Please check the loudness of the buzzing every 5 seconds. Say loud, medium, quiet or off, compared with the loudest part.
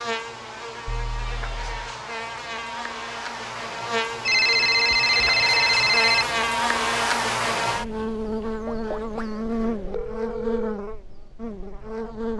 medium, loud, medium.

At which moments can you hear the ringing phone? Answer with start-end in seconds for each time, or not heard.
0.8-1.8, 4.2-6.2, 8.7-10.8.